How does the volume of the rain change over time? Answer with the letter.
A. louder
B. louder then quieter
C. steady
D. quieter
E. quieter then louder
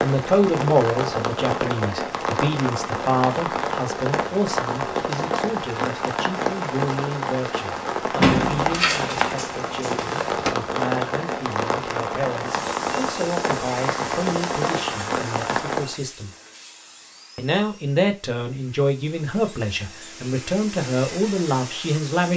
C.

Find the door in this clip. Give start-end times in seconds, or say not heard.
8.2-10.6.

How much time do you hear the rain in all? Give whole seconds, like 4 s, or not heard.
16 s.